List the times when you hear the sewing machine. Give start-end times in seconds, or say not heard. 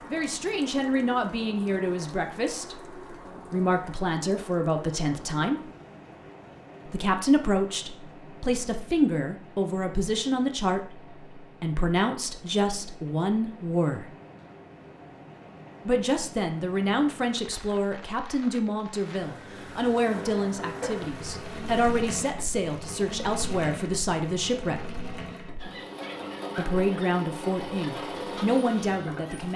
19.9-29.5.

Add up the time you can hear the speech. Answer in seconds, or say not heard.
25 s.